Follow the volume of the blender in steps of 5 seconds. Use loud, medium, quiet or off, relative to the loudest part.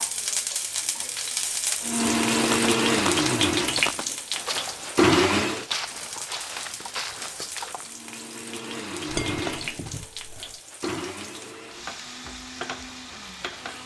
loud, loud, quiet.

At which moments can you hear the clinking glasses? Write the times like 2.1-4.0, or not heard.
9.1-10.4.